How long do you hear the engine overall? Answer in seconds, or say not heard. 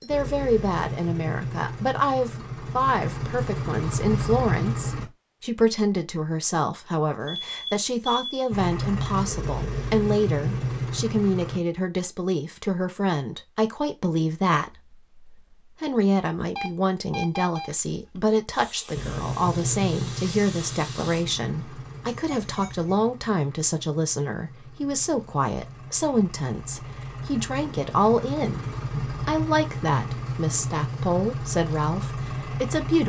22 s.